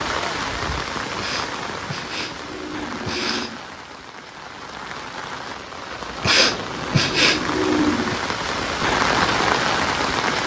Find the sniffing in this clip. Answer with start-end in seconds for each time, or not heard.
1.1-3.6, 6.2-8.2.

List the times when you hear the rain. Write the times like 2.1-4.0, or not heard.
0.0-10.4.